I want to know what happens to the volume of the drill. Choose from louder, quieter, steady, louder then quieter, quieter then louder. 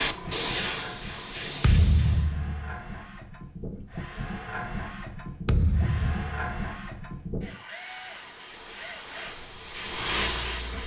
louder then quieter.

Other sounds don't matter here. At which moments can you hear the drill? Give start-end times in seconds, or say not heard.
0.1-10.8.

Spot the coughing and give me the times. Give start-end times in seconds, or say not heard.
not heard.